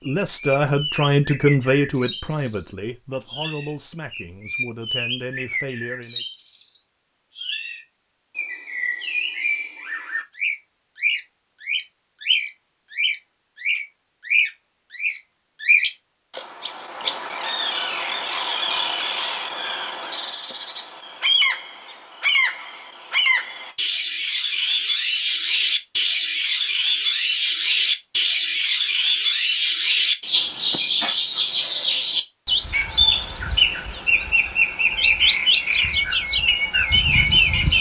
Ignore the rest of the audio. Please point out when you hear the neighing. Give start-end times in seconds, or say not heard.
not heard.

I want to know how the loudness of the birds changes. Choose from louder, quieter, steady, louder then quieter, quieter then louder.
louder.